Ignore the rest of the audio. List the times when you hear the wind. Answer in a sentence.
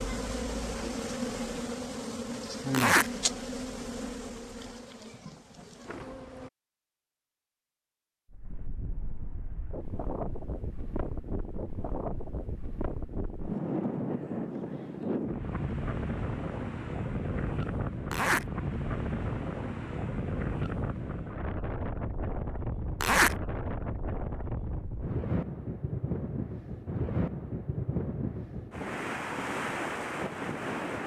The wind can be heard from 8.3 to 31.0 s.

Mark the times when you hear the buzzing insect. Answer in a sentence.
You can hear the buzzing insect from 0.0 to 6.5 s.